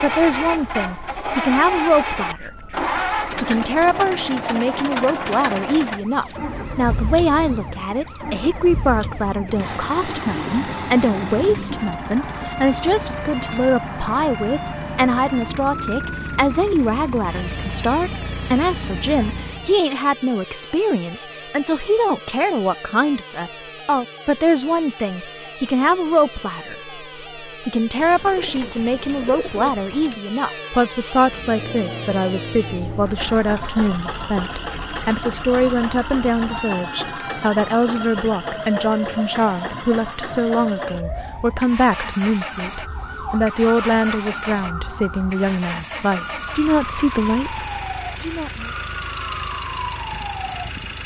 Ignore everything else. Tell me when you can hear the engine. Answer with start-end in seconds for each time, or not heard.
0.0-19.8, 31.1-51.0.